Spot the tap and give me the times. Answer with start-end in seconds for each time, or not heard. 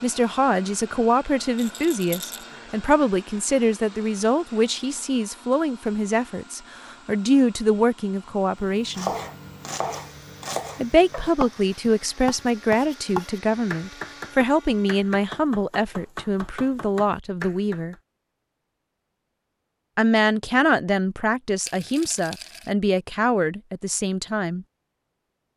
not heard.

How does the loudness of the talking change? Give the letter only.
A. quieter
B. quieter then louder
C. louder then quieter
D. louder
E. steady
E.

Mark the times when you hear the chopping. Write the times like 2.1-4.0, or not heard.
8.8-17.9.